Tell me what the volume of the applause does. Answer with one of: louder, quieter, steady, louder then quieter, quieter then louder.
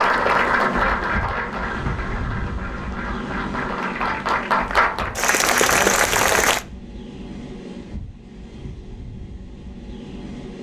quieter then louder.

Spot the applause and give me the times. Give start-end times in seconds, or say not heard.
0.0-6.7.